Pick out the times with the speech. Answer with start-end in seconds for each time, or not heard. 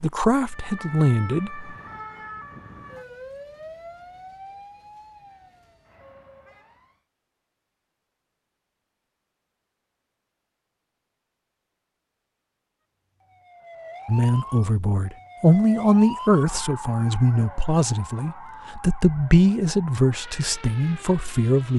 0.0-1.7, 14.1-21.7.